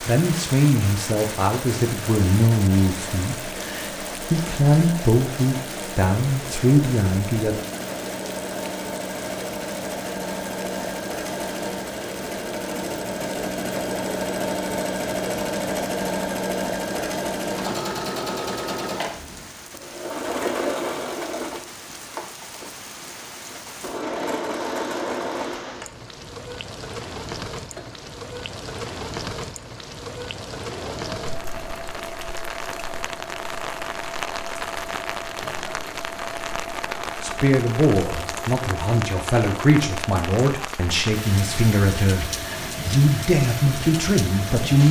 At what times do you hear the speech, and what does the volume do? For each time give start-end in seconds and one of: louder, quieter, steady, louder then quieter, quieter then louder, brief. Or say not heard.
0.0-7.6 quieter then louder
37.2-44.8 steady.